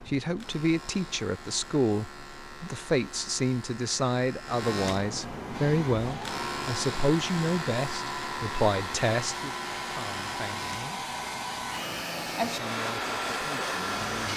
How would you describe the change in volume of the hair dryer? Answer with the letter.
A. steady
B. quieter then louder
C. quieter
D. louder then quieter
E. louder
E.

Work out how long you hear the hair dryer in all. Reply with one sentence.
The hair dryer can be heard for 9 seconds in total.